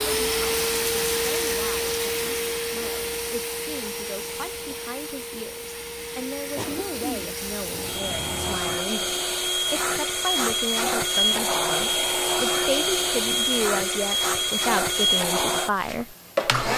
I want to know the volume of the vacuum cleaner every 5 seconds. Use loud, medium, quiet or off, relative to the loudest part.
loud, medium, loud, loud.